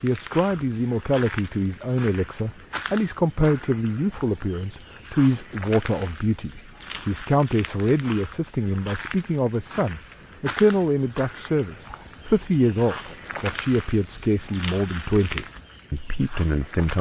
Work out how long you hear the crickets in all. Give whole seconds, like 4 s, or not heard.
17 s.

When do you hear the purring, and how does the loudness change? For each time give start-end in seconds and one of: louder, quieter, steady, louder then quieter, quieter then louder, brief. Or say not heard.
not heard.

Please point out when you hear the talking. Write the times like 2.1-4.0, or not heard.
0.0-16.9.